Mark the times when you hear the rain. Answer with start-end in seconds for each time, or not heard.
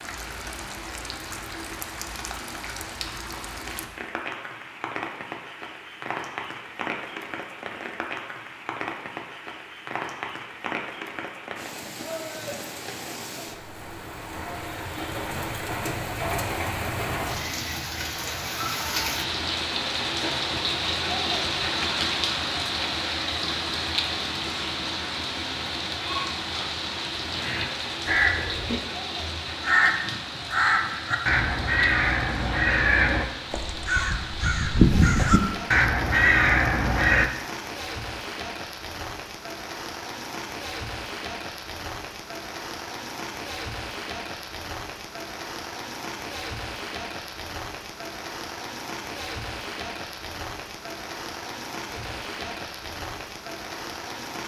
0.0-54.4.